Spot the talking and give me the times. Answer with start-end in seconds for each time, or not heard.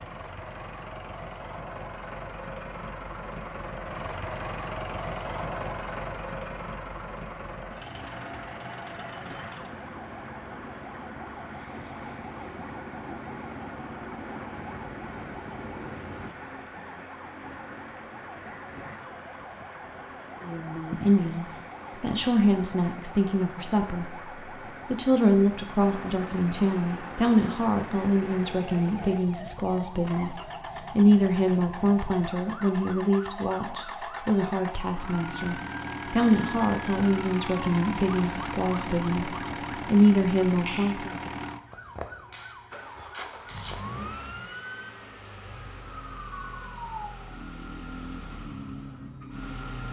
20.4-41.1.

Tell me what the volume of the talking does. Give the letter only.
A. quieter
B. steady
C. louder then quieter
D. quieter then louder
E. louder
B.